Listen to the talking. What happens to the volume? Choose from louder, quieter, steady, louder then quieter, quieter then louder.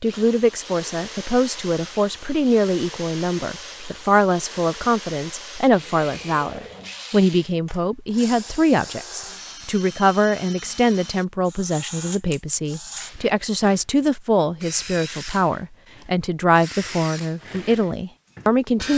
steady.